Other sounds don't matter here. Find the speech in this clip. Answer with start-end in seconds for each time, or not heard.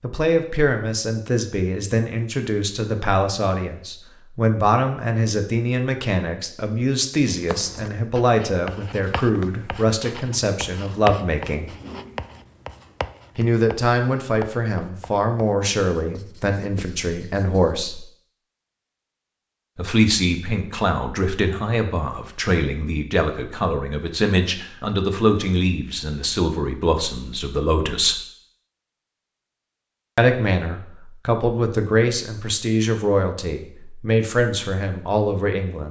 0.0-11.7, 13.3-18.1, 19.8-28.2, 30.1-35.8.